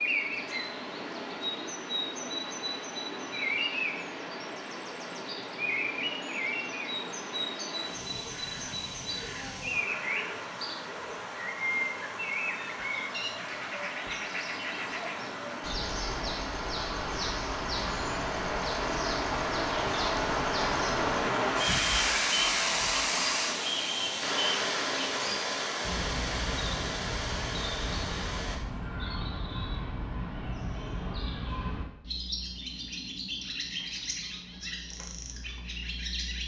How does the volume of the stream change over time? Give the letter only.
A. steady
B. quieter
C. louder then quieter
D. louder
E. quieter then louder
D.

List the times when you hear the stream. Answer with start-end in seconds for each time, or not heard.
0.0-28.6.